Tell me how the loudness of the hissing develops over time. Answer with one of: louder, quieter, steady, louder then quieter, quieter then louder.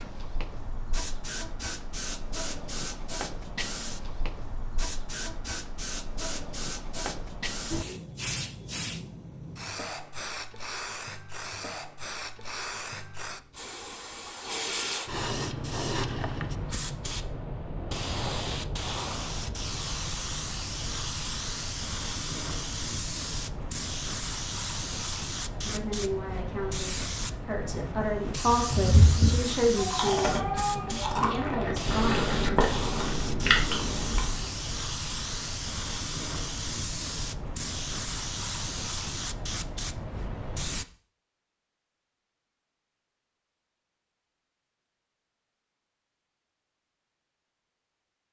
steady.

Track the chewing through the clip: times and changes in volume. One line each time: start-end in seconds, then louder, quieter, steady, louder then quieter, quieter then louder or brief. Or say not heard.
28.6-34.4 steady.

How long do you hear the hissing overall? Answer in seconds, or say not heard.
41 s.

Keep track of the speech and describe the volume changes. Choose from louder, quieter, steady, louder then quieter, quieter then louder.
louder then quieter.